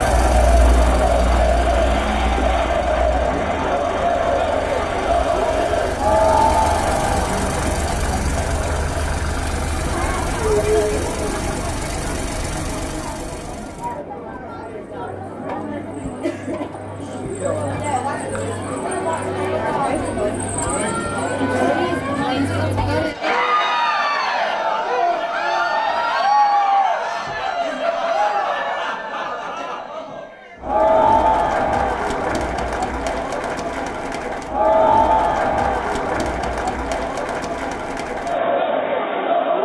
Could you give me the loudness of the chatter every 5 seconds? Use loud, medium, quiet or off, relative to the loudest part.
loud, loud, medium, medium, loud, loud, loud, loud.